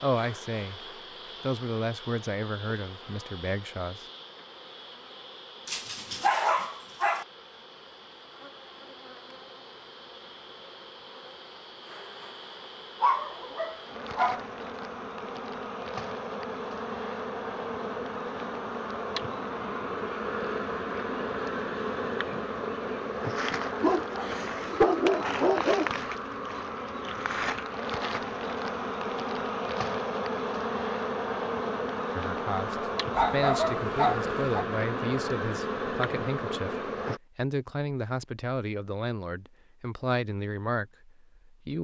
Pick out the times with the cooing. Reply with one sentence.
You can't hear the cooing here.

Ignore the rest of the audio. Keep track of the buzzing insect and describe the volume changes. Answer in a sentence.
The loudness of the buzzing insect goes up.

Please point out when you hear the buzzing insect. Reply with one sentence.
You can hear the buzzing insect from 0.0 to 37.2 s.